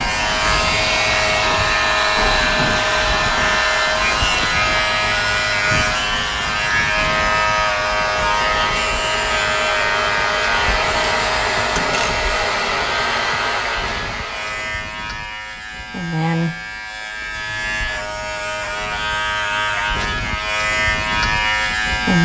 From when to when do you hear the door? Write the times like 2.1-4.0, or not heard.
2.1-2.9, 11.8-12.4.